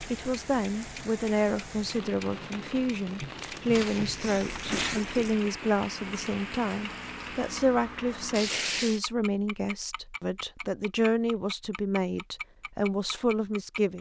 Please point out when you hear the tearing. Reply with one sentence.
You can hear the tearing from 3.2 to 5.0 s and from 8.3 to 9.0 s.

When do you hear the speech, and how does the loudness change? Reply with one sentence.
The speech can be heard from 0.1 to 13.9 s, at a steady volume.